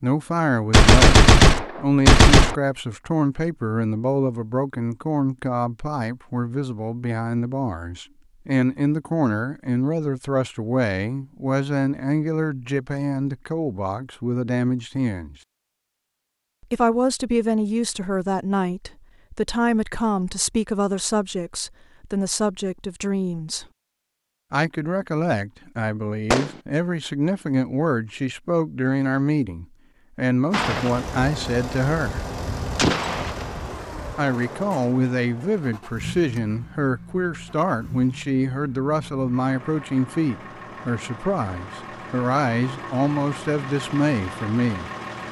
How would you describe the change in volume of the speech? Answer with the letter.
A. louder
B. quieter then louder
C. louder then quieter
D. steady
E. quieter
D.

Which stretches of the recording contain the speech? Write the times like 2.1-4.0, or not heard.
0.0-15.3, 16.6-23.6, 24.5-32.2, 34.1-44.9.